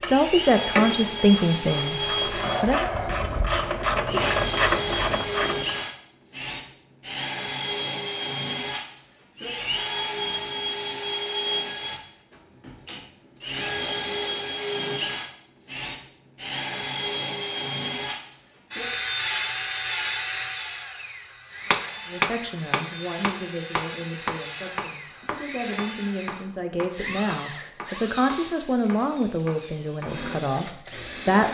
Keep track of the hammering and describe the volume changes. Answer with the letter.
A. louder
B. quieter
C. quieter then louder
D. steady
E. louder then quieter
B.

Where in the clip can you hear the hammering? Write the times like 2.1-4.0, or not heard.
21.7-30.1.